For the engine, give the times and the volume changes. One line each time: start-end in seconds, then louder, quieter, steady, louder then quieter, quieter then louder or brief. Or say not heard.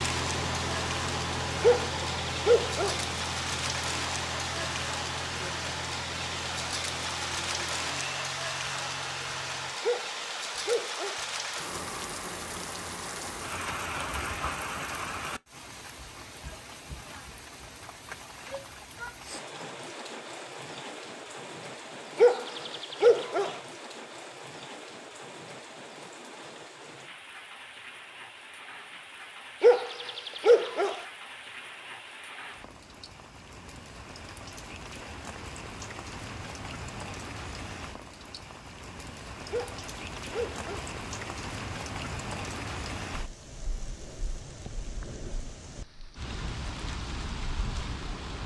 0.0-9.8 quieter.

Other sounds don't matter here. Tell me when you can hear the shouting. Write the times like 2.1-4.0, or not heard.
18.4-19.2.